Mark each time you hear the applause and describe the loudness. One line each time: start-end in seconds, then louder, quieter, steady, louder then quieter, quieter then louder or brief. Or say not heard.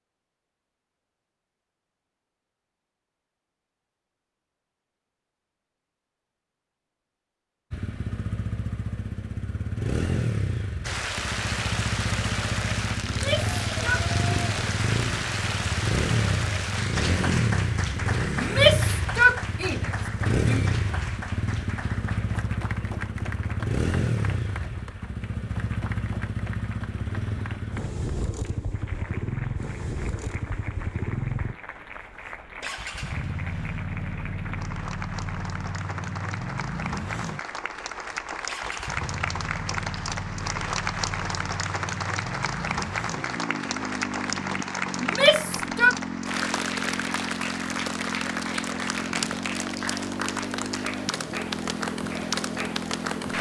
10.8-53.3 quieter then louder.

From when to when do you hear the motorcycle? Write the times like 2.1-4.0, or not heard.
7.7-53.3.